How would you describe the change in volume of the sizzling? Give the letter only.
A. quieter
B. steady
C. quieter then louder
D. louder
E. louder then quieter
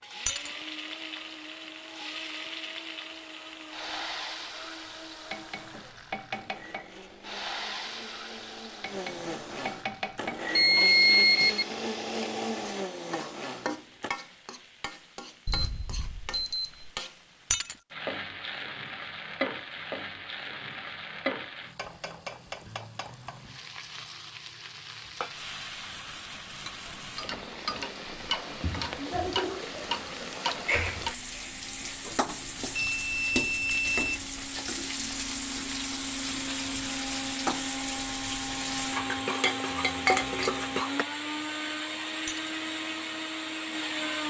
D.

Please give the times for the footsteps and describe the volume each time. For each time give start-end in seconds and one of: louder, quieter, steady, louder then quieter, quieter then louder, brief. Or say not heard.
not heard.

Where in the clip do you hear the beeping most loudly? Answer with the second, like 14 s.
11 s.